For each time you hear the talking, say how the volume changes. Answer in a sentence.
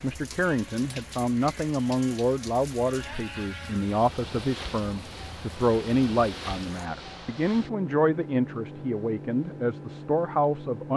You can hear the talking from 0.0 to 10.9 s, at a steady volume.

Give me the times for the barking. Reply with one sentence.
You can't hear the barking here.